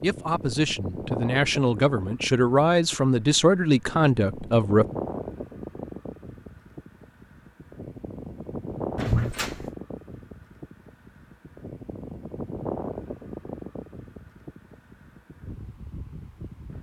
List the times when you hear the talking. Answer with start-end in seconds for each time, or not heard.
0.0-4.8.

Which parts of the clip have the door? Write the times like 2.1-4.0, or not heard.
8.9-9.7.